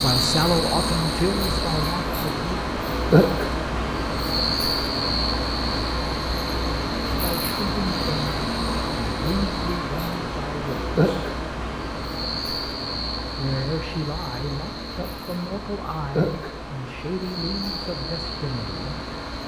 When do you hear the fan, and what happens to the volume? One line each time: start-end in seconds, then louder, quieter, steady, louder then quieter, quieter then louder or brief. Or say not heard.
0.0-19.4 quieter.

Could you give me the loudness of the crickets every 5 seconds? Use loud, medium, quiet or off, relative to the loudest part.
loud, medium, medium, medium.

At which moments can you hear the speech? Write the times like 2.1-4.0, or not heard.
0.0-2.6, 7.1-11.3, 13.3-19.0.